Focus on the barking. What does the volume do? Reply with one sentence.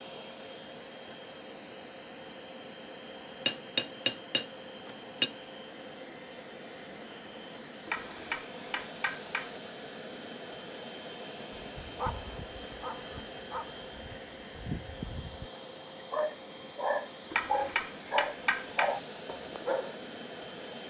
The loudness of the barking goes up.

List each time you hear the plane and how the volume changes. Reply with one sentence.
You can hear the plane from 0.0 to 20.8 s, at a steady volume.